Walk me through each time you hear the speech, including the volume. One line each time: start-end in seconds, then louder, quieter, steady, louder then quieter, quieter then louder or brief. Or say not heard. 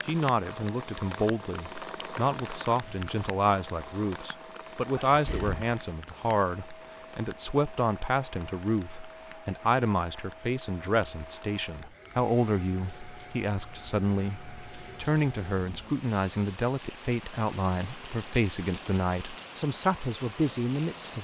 0.1-21.1 steady.